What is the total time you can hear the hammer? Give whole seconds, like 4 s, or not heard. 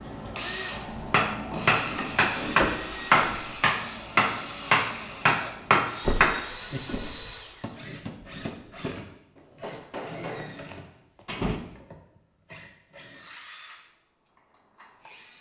10 s.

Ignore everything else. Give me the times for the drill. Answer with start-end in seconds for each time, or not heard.
0.0-15.3.